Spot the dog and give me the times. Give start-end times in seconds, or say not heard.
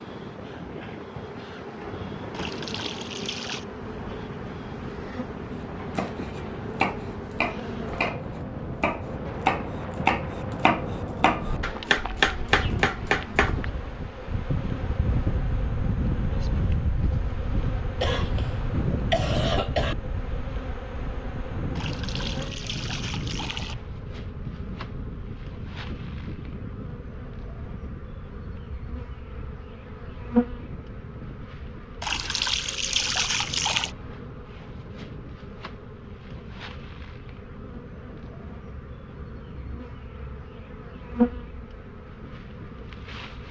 not heard.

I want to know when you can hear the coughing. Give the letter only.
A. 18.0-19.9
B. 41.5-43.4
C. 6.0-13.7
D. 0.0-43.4
A.